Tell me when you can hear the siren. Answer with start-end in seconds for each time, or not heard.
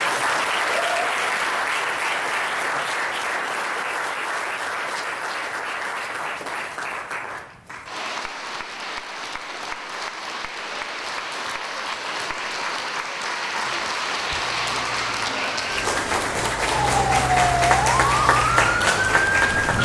14.2-19.8.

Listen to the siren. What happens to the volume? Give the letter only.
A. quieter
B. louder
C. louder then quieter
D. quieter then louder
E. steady
B.